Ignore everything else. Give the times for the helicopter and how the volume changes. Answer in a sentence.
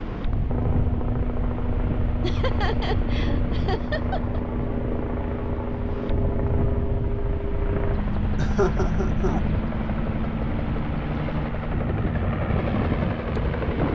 The helicopter can be heard from 0.0 to 13.8 s, at a steady volume.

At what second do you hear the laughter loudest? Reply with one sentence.
The loudest moment of the laughter is at 9 seconds.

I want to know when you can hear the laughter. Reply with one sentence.
The laughter can be heard from 2.2 to 4.4 s and from 8.3 to 9.4 s.